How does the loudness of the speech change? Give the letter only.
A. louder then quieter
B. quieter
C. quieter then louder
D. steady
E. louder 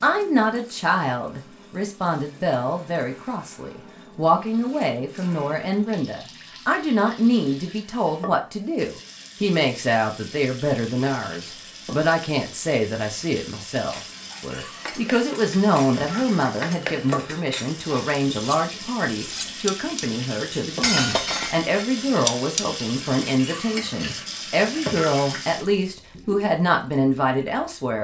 D.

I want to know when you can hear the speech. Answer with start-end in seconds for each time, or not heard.
0.0-27.9.